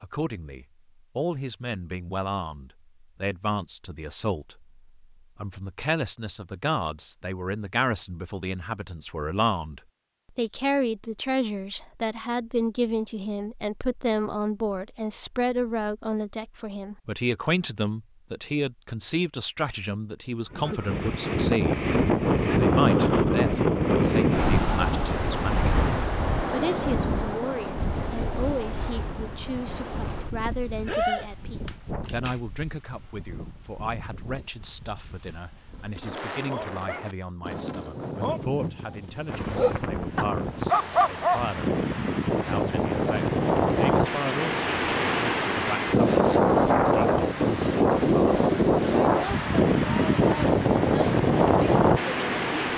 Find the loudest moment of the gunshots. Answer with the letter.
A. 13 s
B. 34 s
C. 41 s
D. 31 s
D.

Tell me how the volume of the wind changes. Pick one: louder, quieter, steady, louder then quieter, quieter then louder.
quieter then louder.